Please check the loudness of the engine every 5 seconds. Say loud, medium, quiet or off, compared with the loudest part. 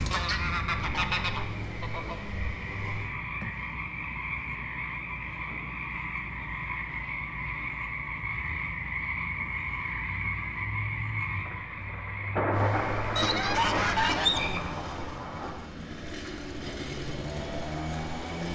medium, off, loud, loud.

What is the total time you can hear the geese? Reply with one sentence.
You can hear the geese for 3 seconds altogether.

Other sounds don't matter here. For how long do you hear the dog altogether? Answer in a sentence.
The dog can't be heard in this clip.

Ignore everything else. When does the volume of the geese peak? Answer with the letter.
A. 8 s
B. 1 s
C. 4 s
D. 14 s
D.